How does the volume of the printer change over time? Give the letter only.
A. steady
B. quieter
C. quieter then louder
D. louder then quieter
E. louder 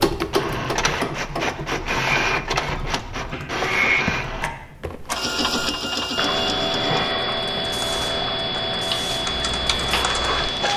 B.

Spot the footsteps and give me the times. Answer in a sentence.
The footsteps can't be heard in this clip.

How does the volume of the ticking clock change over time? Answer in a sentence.
The volume of the ticking clock goes down, then up.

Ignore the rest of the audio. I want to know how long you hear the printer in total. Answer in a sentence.
You can hear the printer for 11 seconds altogether.